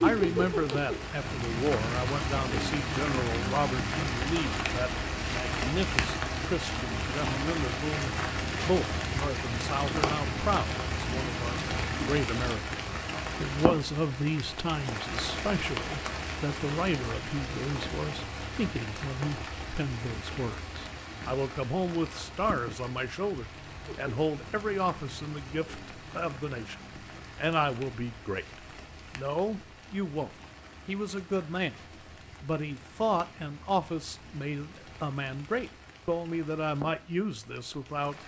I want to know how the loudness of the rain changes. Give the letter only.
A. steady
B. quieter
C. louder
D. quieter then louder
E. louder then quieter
B.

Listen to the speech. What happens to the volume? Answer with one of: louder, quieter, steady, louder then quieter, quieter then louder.
steady.